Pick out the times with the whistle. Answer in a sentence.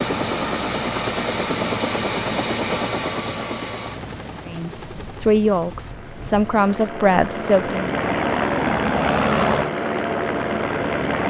The whistle can't be heard in this clip.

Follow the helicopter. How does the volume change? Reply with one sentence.
The loudness of the helicopter goes down, then up.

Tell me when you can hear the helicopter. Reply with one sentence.
The helicopter can be heard from 0.0 to 11.2 s.